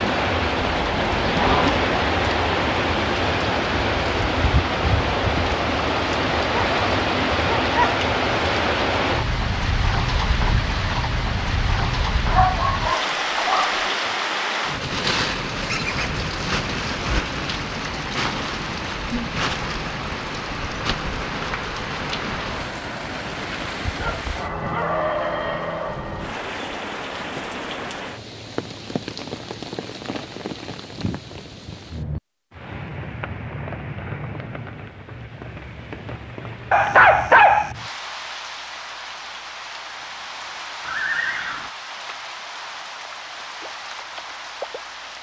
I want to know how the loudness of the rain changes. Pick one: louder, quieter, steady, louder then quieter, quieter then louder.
quieter.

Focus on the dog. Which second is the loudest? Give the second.
37 s.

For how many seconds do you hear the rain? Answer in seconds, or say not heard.
45 s.